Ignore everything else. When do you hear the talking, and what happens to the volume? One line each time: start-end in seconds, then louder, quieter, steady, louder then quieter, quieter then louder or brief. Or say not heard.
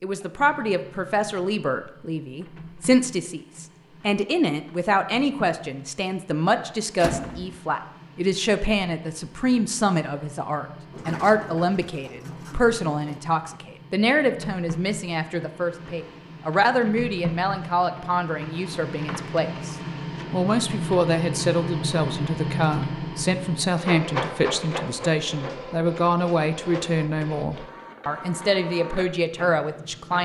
0.0-30.1 steady.